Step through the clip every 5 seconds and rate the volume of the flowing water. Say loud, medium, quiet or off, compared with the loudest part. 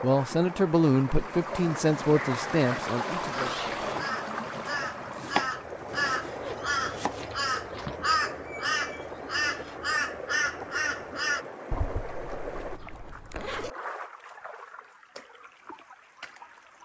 loud, medium, medium, quiet.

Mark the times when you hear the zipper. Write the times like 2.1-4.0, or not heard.
3.3-4.0, 6.4-8.0, 11.7-13.7.